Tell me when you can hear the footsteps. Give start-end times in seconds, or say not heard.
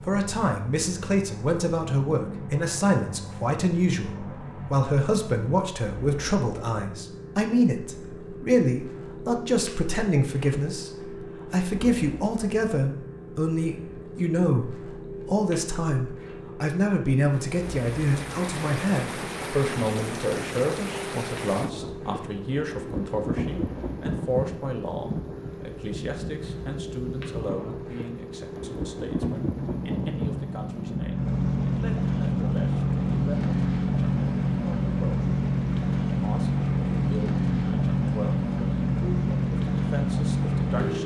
not heard.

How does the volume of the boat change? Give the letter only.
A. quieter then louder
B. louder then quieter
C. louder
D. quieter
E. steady
C.